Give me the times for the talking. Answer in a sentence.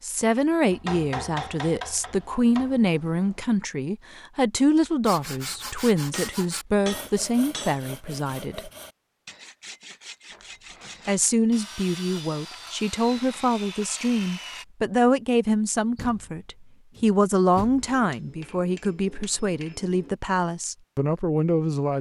You can hear the talking from 0.0 to 8.7 s and from 11.1 to 21.9 s.